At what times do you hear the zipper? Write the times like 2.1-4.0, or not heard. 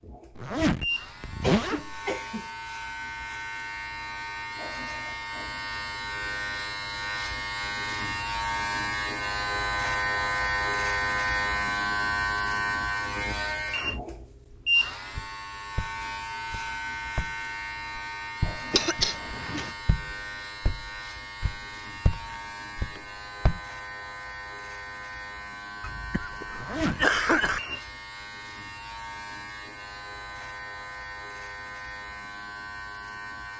0.3-2.0, 26.6-27.6.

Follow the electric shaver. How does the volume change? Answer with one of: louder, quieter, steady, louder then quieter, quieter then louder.
louder then quieter.